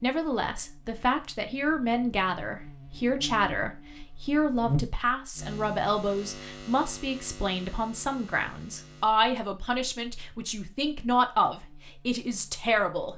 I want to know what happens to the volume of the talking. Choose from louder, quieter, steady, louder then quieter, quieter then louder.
steady.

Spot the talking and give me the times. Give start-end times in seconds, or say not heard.
0.0-13.1.